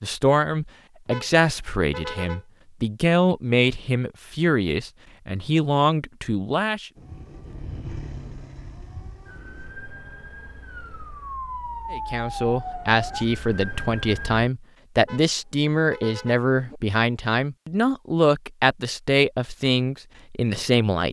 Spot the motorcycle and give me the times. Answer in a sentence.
You can hear the motorcycle from 7.0 to 9.8 s.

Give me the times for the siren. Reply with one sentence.
The siren can be heard from 7.0 to 14.5 s.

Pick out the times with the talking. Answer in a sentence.
The talking can be heard from 0.0 to 6.9 s and from 11.9 to 21.0 s.